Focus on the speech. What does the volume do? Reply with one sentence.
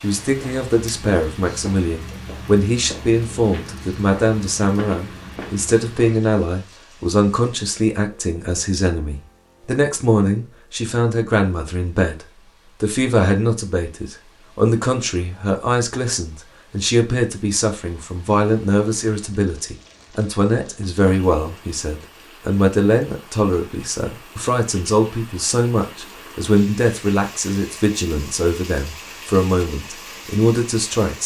The loudness of the speech stays about the same.